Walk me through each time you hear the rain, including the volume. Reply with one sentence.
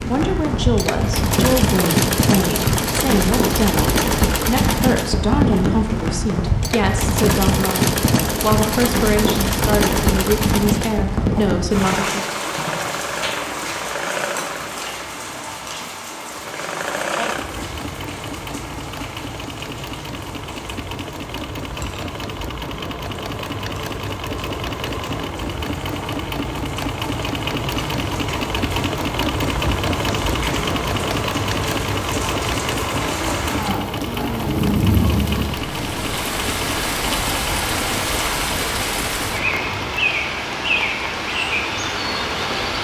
You can hear the rain from 0.0 to 42.8 s, getting quieter then louder.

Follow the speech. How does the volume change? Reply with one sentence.
The loudness of the speech stays about the same.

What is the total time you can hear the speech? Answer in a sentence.
You can hear the speech for 12 seconds altogether.